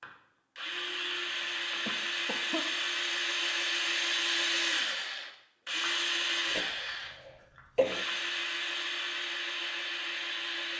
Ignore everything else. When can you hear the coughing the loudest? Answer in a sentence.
The volume of the coughing peaks at 8 seconds.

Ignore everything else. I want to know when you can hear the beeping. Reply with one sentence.
The beeping can't be heard in this clip.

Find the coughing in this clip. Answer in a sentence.
You can hear the coughing from 1.9 to 2.8 s and from 6.5 to 8.1 s.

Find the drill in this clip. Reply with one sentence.
You can hear the drill from 0.0 to 10.7 s.